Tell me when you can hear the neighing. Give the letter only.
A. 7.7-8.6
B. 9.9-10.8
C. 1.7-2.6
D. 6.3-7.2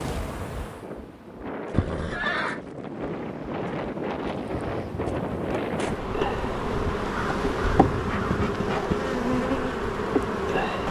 C.